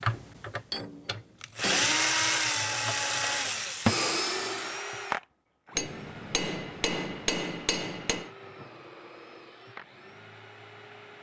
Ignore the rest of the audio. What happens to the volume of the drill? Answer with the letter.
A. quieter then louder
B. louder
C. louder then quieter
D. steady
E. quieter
E.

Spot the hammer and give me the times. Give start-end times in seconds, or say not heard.
0.1-2.0, 5.8-8.3.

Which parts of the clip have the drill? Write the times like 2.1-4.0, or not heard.
0.0-11.1.